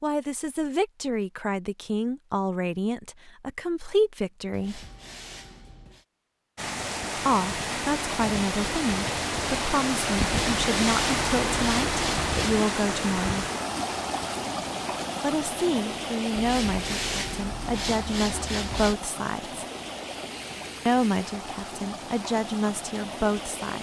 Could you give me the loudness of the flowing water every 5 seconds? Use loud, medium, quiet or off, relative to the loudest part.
off, loud, loud, medium, medium.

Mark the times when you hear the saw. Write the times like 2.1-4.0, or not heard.
4.5-6.0, 10.3-12.7, 16.4-18.9.